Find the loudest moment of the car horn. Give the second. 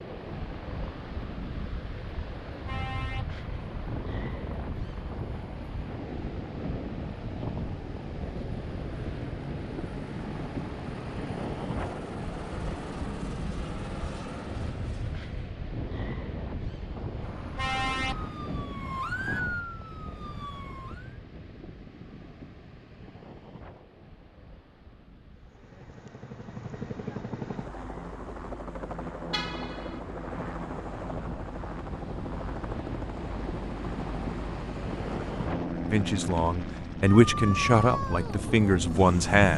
18 s.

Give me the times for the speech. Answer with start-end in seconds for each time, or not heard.
35.9-39.5.